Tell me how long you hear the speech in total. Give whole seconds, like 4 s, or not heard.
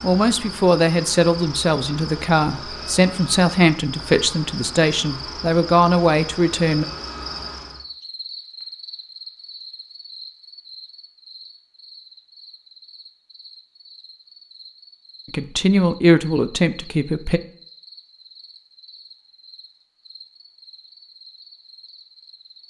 9 s.